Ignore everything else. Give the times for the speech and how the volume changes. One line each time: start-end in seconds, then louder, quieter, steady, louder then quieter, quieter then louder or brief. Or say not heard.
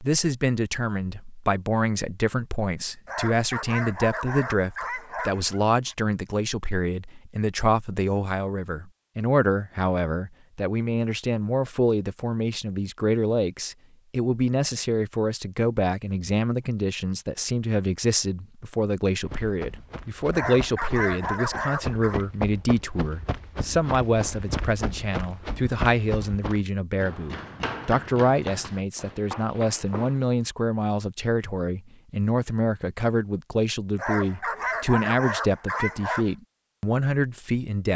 0.0-37.9 steady.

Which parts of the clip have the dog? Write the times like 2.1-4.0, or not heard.
3.0-6.0, 20.3-22.2, 34.0-36.3.